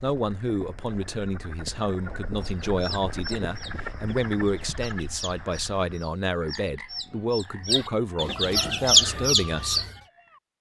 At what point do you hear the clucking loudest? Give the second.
9 s.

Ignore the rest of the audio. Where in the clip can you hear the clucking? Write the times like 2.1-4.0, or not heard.
2.4-9.9.